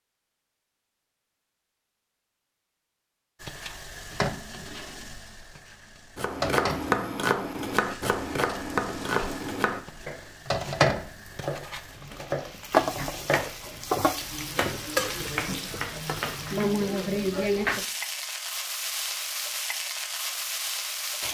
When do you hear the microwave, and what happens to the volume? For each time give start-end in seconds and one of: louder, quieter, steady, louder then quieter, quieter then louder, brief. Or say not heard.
not heard.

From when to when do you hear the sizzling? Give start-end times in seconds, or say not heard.
3.4-21.2.